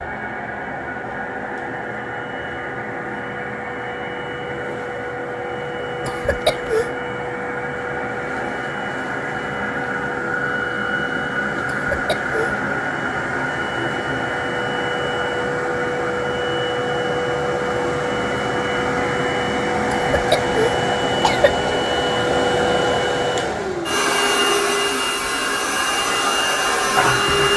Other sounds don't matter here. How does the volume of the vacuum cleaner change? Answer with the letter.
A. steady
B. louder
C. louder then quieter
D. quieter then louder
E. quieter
B.